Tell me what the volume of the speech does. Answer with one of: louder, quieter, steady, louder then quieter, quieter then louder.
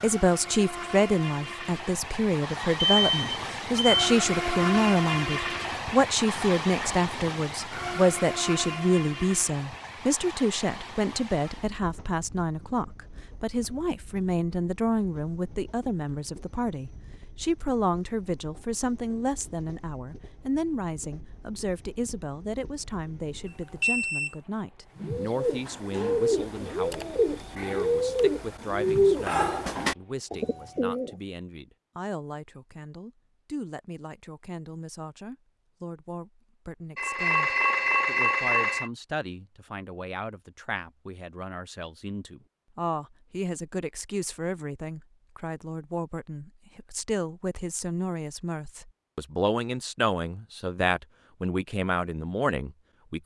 quieter then louder.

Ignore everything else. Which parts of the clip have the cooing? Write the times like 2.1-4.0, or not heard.
25.1-31.1.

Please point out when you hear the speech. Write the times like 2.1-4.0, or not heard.
0.0-53.2.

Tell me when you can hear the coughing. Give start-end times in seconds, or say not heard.
not heard.